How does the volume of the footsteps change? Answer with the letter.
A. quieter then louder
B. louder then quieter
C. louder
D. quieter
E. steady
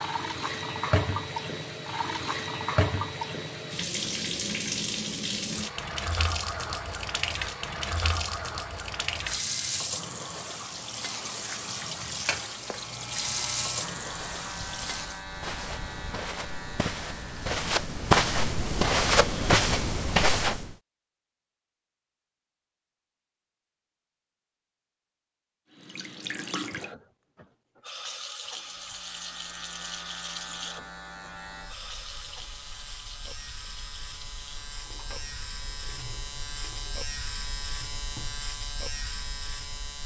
C.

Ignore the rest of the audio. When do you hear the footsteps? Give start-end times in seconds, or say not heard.
15.2-20.8.